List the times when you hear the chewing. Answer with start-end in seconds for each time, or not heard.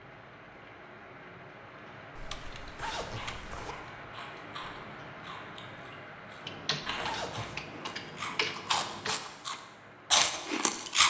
3.0-11.0.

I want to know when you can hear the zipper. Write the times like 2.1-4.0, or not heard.
2.8-3.8, 7.0-7.7.